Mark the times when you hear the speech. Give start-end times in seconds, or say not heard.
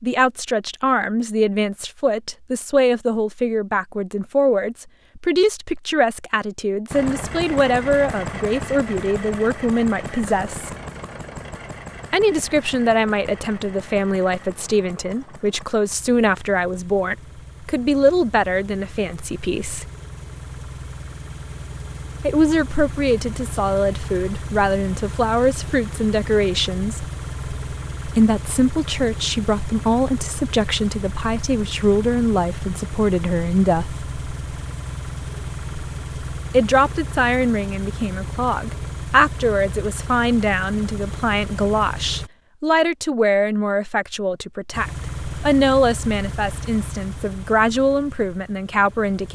0.0-10.7, 12.1-19.9, 22.2-27.1, 28.1-34.0, 36.5-49.3.